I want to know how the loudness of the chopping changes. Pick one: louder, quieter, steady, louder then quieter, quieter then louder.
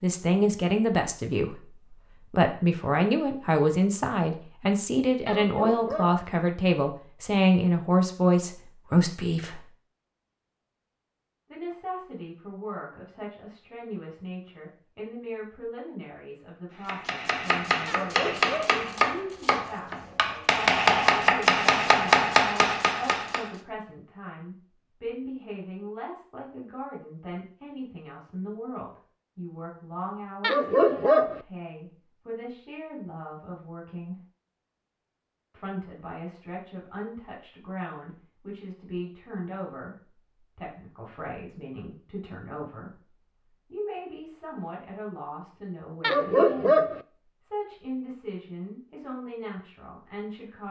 louder.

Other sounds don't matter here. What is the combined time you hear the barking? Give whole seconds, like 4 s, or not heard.
4 s.